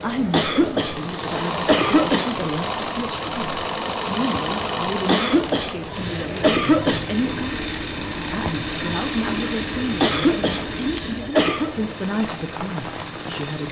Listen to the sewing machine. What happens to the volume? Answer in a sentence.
The volume of the sewing machine goes down.